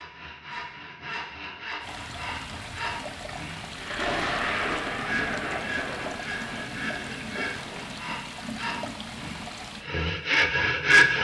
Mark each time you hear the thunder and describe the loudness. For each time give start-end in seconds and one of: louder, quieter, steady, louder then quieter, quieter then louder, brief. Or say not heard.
3.8-8.2 quieter.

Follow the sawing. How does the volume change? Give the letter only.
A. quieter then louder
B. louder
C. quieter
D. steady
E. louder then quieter
B.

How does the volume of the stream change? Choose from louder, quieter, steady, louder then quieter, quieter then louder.
steady.